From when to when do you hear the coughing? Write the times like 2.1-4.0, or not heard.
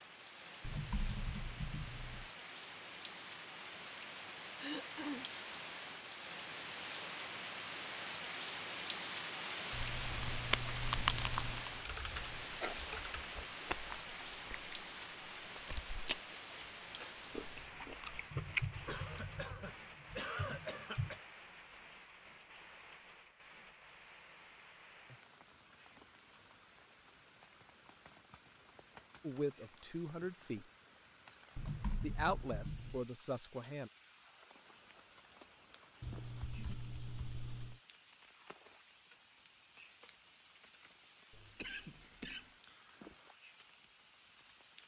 4.5-5.2, 18.9-21.2, 41.3-42.5.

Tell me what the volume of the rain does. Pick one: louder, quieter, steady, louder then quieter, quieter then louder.
quieter.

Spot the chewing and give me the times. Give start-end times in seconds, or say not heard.
9.7-19.0.